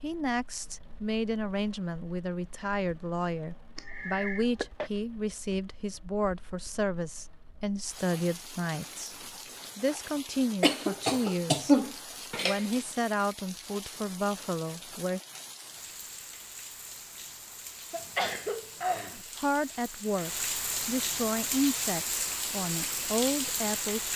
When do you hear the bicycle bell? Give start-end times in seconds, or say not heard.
not heard.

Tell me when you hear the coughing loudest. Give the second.
12 s.